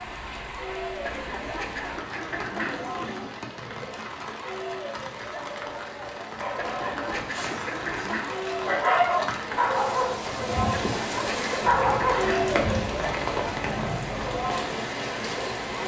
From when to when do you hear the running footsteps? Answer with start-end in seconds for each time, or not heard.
not heard.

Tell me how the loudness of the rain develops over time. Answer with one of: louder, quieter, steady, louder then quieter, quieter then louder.
louder.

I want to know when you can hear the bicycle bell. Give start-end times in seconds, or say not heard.
not heard.